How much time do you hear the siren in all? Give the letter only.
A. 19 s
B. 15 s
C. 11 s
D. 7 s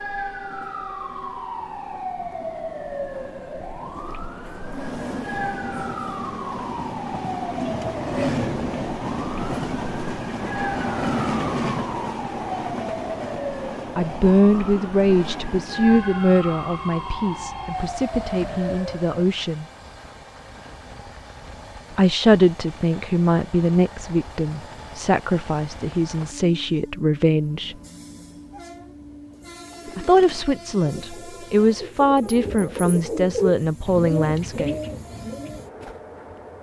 A.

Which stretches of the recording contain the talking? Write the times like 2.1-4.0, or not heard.
13.9-19.6, 21.9-27.8, 29.9-34.8.